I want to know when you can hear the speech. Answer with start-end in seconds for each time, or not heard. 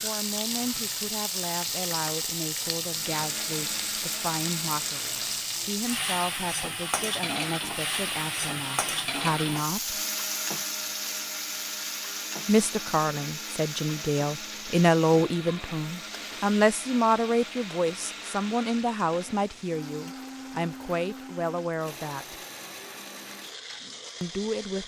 0.0-10.0, 12.4-22.4, 24.2-24.8.